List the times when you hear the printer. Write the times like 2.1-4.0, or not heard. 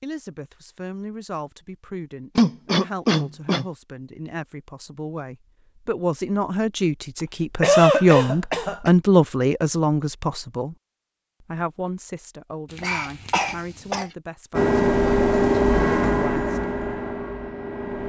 14.5-18.0.